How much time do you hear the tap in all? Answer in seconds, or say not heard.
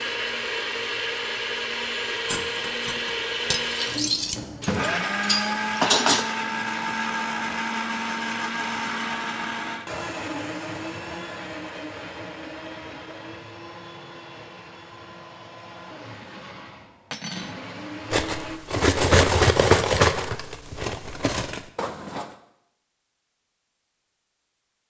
not heard.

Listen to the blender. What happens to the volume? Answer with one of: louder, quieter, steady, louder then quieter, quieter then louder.
quieter.